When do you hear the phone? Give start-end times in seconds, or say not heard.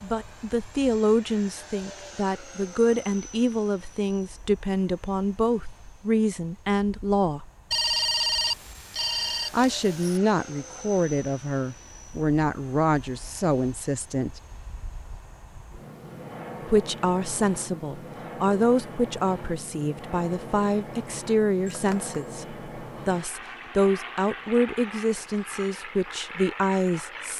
7.7-10.2, 21.6-22.1.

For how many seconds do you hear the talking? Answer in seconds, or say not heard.
23 s.